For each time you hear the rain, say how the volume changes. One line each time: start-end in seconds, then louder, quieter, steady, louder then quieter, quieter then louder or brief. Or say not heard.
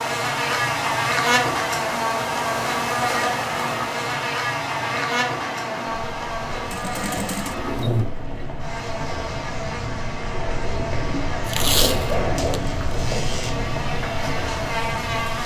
0.2-15.4 louder.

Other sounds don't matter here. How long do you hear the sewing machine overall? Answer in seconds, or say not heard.
2 s.